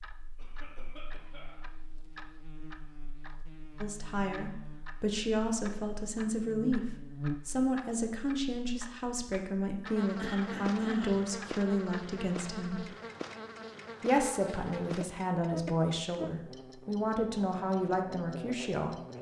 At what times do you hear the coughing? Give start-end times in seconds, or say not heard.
0.3-1.6, 10.2-11.2.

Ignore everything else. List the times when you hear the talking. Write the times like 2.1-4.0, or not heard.
3.8-12.9, 14.0-18.9.